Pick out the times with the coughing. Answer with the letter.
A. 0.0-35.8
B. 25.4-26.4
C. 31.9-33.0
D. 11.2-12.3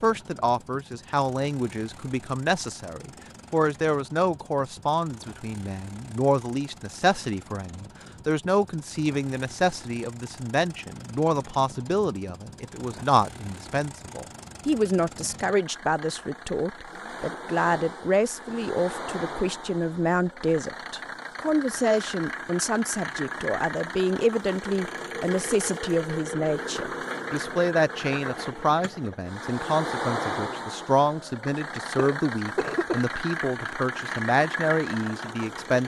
C.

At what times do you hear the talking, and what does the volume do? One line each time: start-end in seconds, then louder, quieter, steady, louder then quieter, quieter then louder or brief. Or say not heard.
0.0-35.8 steady.